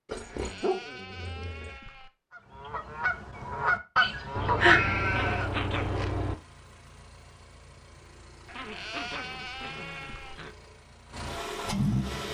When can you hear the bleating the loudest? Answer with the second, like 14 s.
5 s.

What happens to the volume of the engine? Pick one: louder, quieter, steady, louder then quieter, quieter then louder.
louder.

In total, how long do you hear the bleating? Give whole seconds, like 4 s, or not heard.
6 s.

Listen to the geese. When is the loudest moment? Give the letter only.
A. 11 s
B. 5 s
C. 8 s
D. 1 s
B.